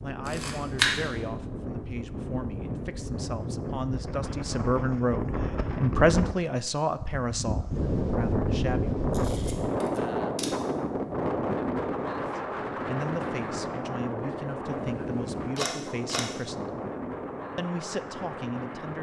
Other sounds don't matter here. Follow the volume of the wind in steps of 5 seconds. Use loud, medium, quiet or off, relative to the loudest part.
medium, loud, loud, medium.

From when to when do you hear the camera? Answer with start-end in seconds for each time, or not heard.
0.2-0.9, 9.1-10.6, 14.8-16.2.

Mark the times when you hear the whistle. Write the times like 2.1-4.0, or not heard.
not heard.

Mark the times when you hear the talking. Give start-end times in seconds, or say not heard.
0.0-9.1, 12.3-16.9, 17.6-18.9.